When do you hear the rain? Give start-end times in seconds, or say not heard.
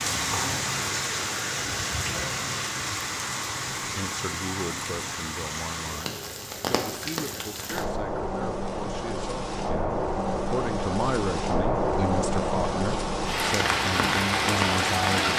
0.0-15.3.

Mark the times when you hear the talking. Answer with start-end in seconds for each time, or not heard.
3.9-15.3.